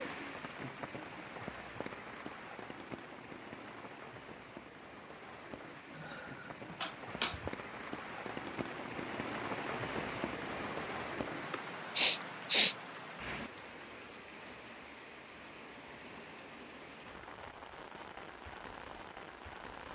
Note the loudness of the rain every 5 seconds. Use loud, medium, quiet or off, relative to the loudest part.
loud, loud, loud, medium.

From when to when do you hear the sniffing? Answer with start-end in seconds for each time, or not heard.
5.9-7.5, 11.5-12.8.